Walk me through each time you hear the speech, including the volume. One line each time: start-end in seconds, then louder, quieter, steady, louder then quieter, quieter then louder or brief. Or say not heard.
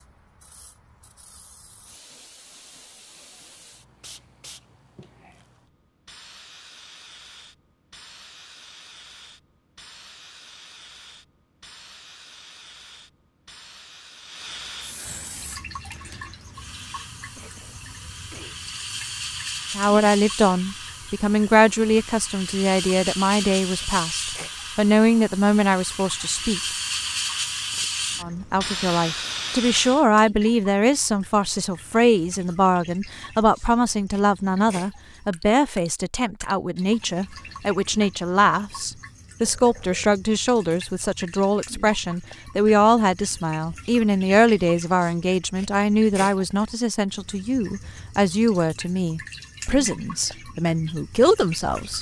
19.8-26.6 steady
28.2-51.9 steady.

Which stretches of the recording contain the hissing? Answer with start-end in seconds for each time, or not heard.
0.0-30.1.